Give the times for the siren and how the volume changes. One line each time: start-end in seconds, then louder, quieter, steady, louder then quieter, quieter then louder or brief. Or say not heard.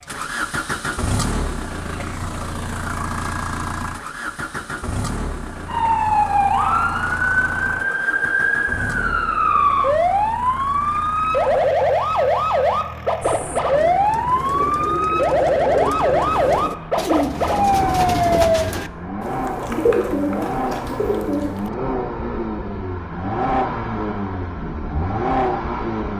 5.7-18.6 steady.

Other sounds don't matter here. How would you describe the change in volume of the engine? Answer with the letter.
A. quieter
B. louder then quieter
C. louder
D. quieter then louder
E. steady
D.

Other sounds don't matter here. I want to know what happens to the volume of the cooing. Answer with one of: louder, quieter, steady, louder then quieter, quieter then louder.
louder.